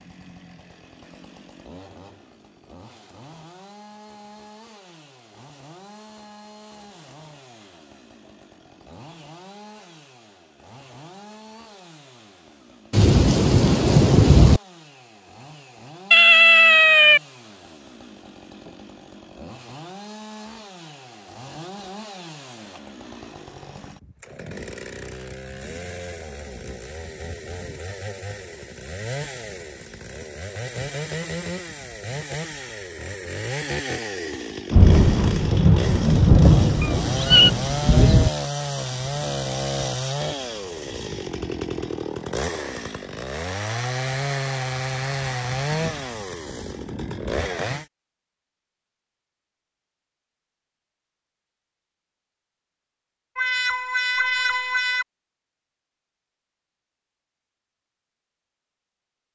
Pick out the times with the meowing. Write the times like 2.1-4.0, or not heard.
16.1-17.2, 36.8-37.5, 53.4-55.0.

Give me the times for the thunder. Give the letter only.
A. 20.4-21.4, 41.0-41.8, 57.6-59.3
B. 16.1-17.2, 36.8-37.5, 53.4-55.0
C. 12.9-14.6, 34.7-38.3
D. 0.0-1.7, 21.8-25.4
C.